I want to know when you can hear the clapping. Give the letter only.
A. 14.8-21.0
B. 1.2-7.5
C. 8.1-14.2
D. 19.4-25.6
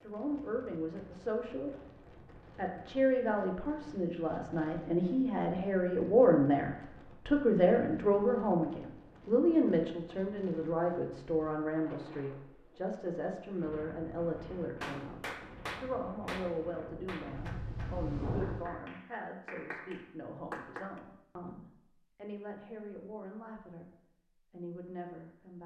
A.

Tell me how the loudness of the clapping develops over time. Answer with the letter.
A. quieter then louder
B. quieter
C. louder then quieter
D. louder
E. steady
A.